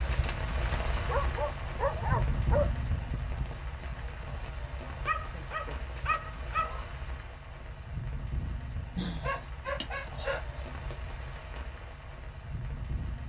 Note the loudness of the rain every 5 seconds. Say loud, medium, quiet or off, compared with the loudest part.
loud, medium, medium.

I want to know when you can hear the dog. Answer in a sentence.
You can hear the dog from 1.0 to 2.7 s, from 4.8 to 6.8 s and from 8.9 to 10.6 s.